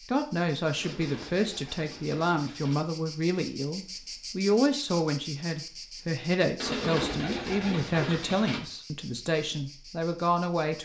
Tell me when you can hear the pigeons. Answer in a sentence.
The pigeons can be heard from 0.8 to 2.8 s and from 6.5 to 8.6 s.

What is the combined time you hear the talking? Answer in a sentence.
The talking can be heard for 11 seconds in total.